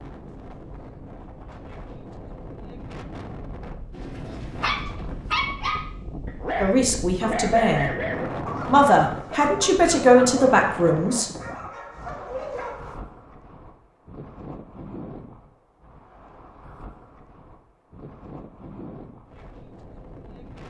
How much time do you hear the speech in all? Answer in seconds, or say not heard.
4 s.